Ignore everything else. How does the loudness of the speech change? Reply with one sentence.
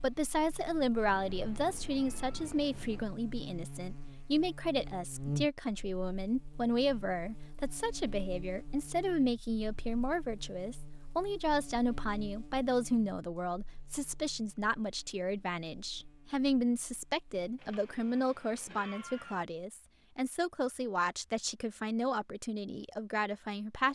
The loudness of the speech stays about the same.